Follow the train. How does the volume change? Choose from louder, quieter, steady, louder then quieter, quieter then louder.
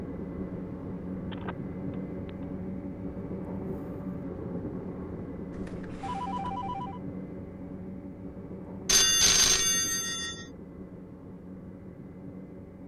quieter.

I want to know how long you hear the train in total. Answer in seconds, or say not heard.
13 s.